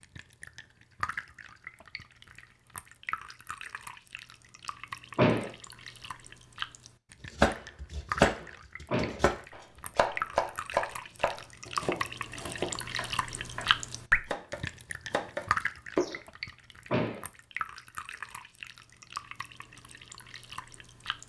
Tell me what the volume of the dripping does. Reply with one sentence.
The volume of the dripping goes up, then down.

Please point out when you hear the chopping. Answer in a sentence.
You can hear the chopping from 7.3 to 16.2 s.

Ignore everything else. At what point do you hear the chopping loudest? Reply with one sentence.
The volume of the chopping peaks at 8 seconds.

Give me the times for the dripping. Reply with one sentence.
The dripping can be heard from 0.0 to 21.2 s.